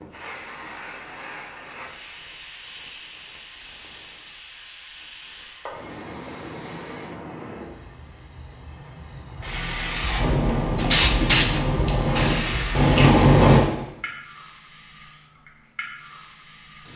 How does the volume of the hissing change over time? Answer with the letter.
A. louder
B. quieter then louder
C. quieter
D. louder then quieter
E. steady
D.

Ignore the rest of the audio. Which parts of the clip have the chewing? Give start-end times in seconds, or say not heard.
10.2-13.6.